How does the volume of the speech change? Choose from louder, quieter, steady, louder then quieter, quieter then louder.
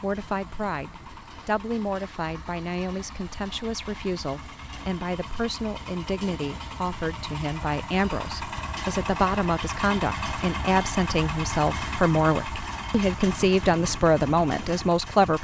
louder.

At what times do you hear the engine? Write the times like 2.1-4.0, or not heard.
0.0-15.3.